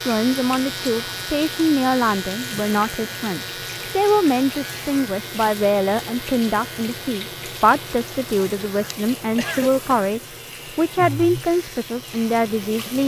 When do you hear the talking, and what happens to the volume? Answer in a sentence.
You can hear the talking from 0.1 to 13.0 s, at a steady volume.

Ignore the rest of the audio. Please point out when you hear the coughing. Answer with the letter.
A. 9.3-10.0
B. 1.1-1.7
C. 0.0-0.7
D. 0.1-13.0
A.